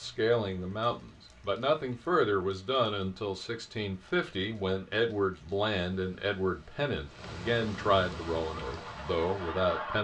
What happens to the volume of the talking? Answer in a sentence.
The volume of the talking stays about the same.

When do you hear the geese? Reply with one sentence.
You can hear the geese from 8.3 to 9.9 s.